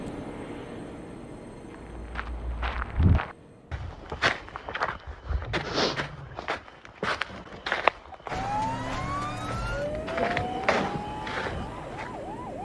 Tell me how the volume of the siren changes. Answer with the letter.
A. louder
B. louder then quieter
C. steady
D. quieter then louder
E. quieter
E.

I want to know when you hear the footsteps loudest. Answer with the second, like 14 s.
8 s.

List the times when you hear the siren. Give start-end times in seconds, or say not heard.
8.2-12.5.